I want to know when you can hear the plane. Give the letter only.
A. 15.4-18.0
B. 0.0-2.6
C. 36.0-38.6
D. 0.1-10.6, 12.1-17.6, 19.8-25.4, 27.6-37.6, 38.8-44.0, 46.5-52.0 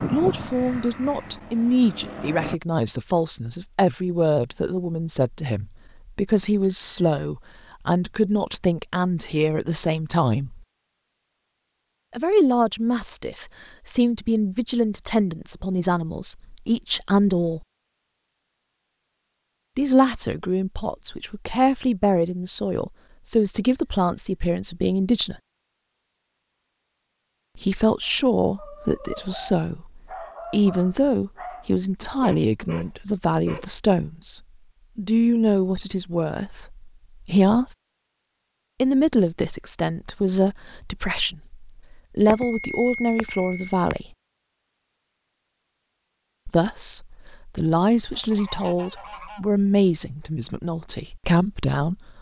B.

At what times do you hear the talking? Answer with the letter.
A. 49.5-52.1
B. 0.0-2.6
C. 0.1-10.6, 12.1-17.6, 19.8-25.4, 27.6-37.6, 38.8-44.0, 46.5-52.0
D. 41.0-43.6
C.